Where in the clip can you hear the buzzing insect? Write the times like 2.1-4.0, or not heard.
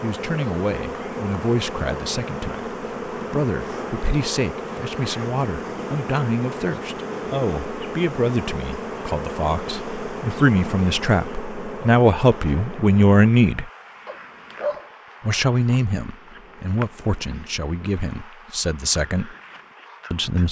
0.0-20.4.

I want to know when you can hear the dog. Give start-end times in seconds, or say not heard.
14.1-15.4.